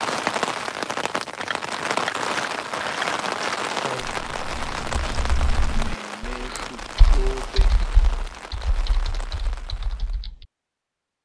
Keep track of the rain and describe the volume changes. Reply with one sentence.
The volume of the rain goes down.